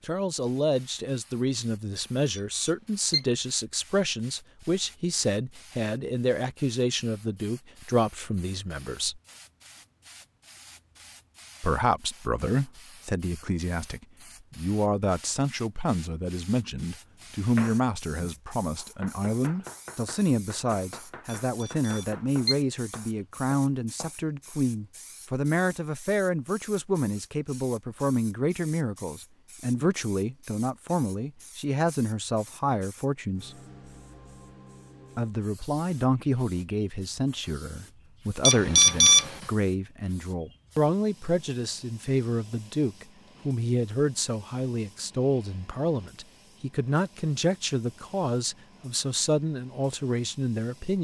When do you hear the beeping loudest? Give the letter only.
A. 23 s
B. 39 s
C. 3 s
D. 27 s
B.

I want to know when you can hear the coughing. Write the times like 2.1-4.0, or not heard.
not heard.